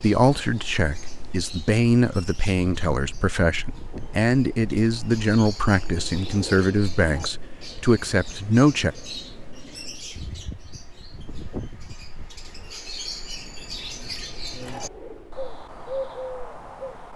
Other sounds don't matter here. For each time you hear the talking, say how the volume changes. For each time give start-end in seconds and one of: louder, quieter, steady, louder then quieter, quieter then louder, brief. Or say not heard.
0.0-8.9 steady.